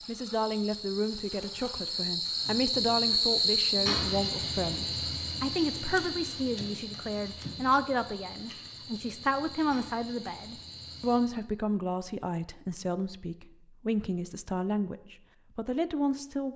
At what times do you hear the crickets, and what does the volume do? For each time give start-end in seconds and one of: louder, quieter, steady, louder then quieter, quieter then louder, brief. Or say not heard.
0.0-11.4 louder then quieter.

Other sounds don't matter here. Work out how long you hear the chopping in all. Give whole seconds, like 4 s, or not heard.
not heard.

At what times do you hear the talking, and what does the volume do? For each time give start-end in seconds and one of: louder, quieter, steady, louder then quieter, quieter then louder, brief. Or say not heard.
0.1-16.5 steady.